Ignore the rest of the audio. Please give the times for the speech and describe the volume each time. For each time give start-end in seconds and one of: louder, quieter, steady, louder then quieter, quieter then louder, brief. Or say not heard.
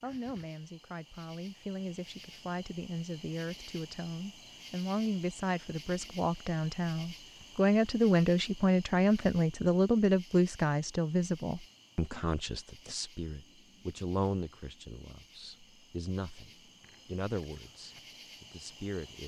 0.0-19.2 louder then quieter.